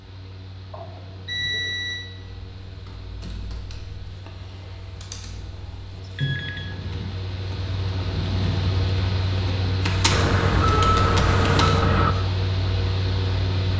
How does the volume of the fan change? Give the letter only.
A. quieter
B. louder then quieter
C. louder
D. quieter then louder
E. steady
C.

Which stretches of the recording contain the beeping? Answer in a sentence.
You can hear the beeping from 0.7 to 2.0 s, from 6.0 to 6.7 s and from 10.1 to 12.2 s.